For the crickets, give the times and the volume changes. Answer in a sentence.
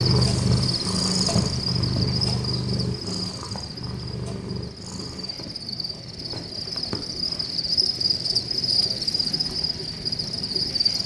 The crickets can be heard from 0.0 to 11.0 s, getting quieter then louder.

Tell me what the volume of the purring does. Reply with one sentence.
The volume of the purring goes down.